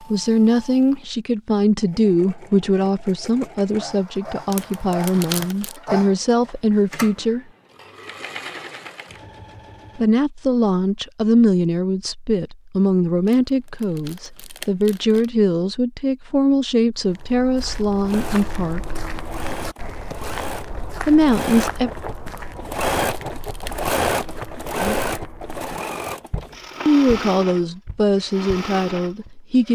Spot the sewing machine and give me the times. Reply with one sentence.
The sewing machine can be heard from 0.0 to 10.1 s and from 18.1 to 29.7 s.